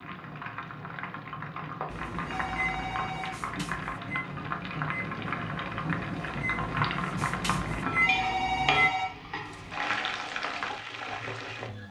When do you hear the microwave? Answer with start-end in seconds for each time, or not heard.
1.9-8.9.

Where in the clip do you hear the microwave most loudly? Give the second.
8 s.